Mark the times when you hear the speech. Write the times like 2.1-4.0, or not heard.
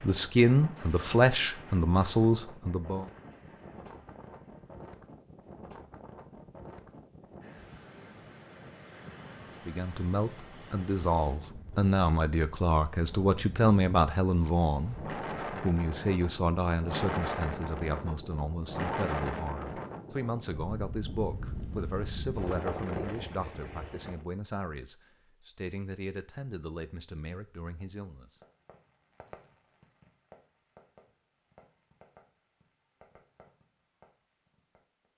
0.0-3.0, 9.7-28.4.